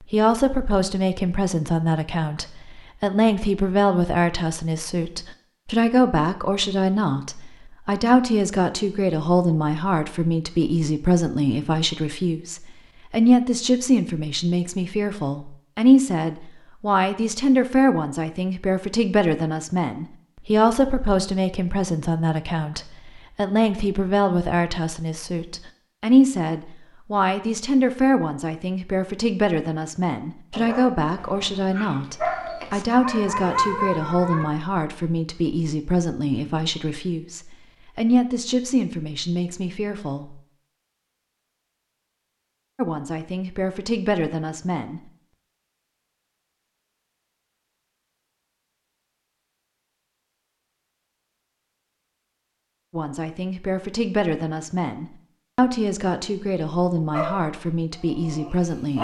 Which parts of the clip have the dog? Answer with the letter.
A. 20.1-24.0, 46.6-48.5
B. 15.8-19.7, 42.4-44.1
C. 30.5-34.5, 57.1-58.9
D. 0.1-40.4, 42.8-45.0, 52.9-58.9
C.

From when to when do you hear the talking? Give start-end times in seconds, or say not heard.
0.1-40.4, 42.8-45.0, 52.9-58.9.